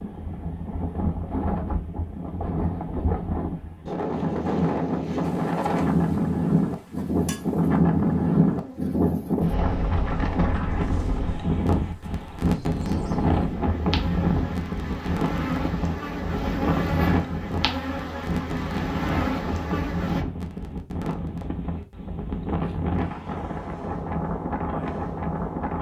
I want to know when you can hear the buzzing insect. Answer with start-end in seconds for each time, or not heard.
5.2-20.2.